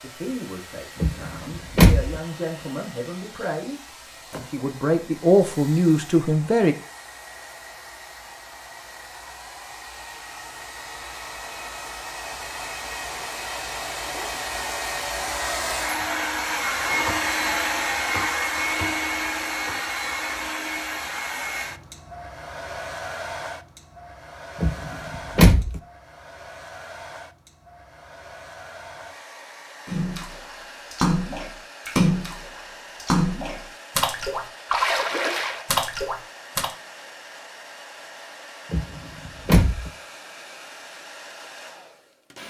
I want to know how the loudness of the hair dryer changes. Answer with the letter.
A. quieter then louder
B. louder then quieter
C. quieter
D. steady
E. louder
B.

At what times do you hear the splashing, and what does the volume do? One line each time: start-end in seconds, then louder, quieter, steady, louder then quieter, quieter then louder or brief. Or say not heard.
29.9-36.8 steady.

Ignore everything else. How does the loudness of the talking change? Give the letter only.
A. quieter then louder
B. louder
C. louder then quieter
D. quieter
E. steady
B.